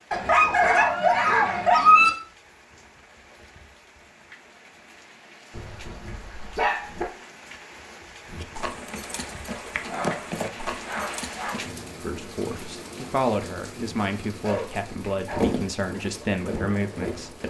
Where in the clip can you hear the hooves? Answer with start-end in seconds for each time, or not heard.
8.2-11.8, 15.3-17.4.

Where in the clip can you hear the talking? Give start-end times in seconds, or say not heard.
12.0-17.4.